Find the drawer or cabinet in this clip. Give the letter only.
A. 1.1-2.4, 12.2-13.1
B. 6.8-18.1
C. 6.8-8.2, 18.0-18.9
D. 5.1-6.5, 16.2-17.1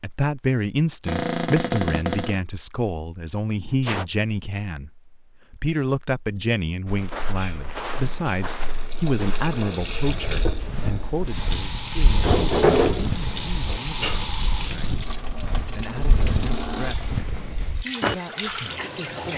A.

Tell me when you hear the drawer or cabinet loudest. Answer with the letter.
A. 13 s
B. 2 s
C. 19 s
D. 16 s
A.